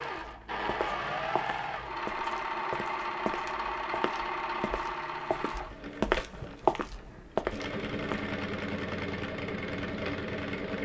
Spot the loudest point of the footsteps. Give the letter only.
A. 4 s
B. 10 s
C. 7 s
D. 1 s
C.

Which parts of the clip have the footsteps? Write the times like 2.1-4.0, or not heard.
0.1-8.3.